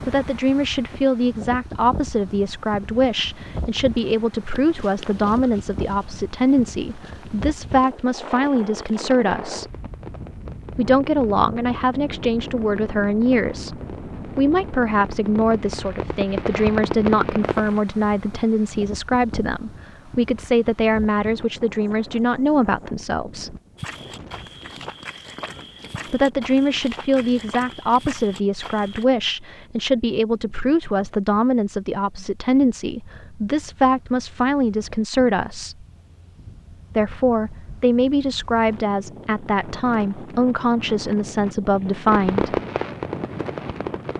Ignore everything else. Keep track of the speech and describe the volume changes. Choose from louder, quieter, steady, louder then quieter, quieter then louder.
steady.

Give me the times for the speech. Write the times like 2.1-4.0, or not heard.
0.1-9.7, 10.8-23.6, 26.1-35.8, 37.0-42.6.